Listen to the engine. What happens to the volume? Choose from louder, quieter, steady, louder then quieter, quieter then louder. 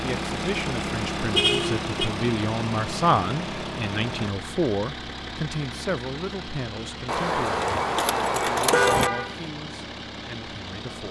quieter.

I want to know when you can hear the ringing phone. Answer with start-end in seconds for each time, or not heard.
not heard.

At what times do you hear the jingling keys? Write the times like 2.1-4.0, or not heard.
7.0-9.1.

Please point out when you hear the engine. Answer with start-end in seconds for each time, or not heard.
0.0-11.0.